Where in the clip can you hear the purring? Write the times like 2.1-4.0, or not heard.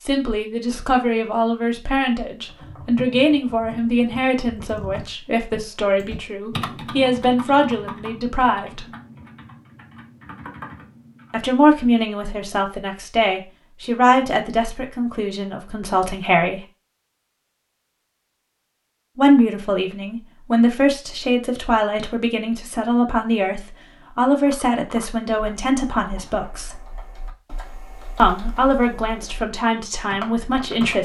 not heard.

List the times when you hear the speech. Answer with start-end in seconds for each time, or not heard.
0.1-8.8, 11.3-16.6, 19.1-26.8, 28.1-30.9.